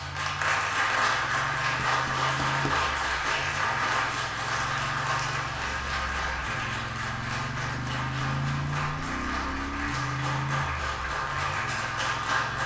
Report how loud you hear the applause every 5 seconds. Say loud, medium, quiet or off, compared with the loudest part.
loud, medium, loud.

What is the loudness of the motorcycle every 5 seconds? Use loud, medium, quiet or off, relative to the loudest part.
medium, loud, loud.